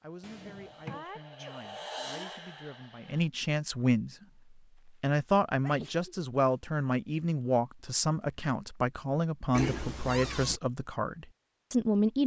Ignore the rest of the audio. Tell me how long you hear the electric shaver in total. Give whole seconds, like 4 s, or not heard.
not heard.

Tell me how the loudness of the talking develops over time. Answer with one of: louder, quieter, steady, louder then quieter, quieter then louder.
louder.